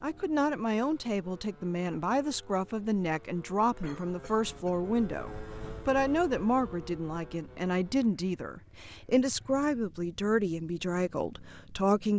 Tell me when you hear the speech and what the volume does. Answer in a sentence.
You can hear the speech from 0.0 to 12.1 s, at a steady volume.